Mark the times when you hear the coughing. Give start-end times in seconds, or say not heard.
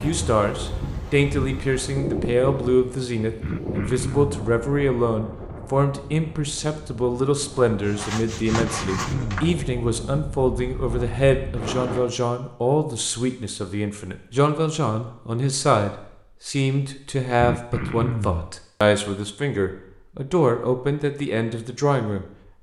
3.4-4.4, 8.5-9.6, 17.4-18.5.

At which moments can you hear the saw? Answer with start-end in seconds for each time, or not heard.
7.8-9.5.